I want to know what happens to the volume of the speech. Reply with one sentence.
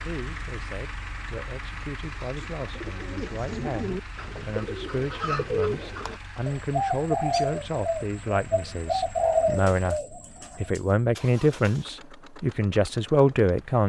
The volume of the speech goes up.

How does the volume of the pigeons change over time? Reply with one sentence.
The loudness of the pigeons goes up.